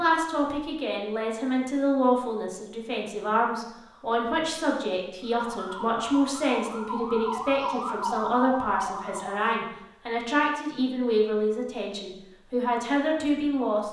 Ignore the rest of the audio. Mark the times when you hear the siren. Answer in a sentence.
The siren can be heard from 5.2 to 9.6 s.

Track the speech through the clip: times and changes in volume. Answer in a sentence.
You can hear the speech from 0.0 to 13.8 s, at a steady volume.